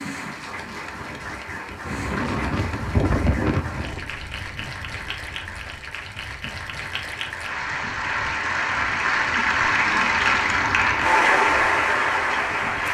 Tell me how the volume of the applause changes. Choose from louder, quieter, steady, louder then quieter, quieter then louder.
louder.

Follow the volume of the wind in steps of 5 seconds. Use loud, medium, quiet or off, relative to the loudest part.
loud, quiet, quiet.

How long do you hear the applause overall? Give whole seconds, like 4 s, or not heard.
13 s.